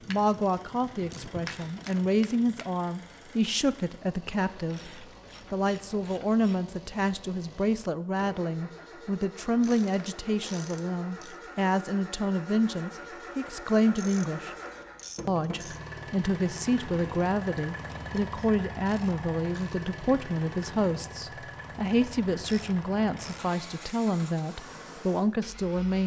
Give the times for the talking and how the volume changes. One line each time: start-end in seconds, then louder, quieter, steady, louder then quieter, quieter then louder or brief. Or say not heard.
0.1-14.6 steady
15.2-26.0 steady.